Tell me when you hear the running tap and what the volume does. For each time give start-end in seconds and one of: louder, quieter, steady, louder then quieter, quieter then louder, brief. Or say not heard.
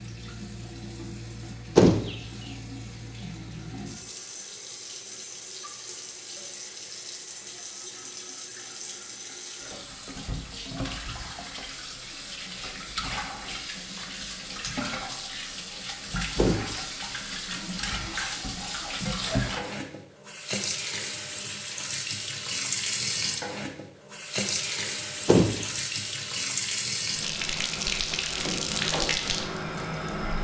0.0-30.3 louder.